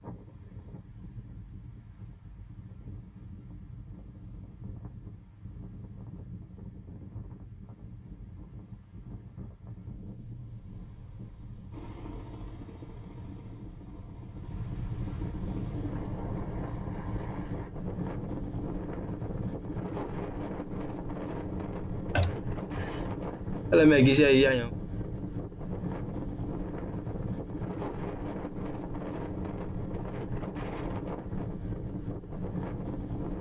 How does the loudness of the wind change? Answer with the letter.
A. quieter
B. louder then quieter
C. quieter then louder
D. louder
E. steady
D.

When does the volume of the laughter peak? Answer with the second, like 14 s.
24 s.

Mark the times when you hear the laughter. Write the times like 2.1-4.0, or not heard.
22.1-22.9, 23.7-24.7.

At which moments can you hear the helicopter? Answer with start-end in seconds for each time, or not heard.
11.7-17.7.